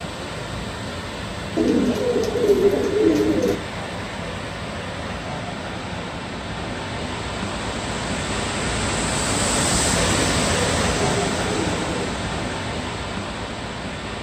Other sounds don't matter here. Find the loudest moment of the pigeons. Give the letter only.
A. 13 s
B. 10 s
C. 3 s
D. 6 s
C.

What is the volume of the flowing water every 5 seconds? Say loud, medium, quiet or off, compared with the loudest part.
medium, loud, loud.